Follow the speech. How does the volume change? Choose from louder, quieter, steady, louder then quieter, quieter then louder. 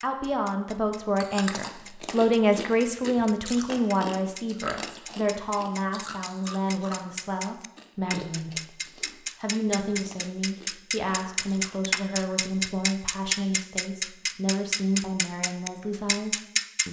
quieter.